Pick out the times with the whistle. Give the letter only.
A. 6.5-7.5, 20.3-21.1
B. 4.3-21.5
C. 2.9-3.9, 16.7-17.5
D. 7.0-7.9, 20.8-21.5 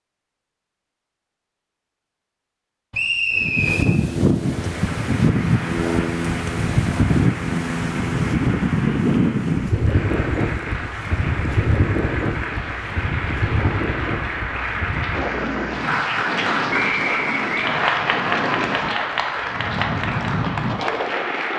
C.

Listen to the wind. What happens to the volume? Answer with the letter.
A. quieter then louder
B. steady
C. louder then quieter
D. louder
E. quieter
E.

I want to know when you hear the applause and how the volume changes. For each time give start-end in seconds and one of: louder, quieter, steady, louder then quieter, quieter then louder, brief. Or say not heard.
4.3-21.5 louder.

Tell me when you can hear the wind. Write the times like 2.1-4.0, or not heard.
3.3-21.5.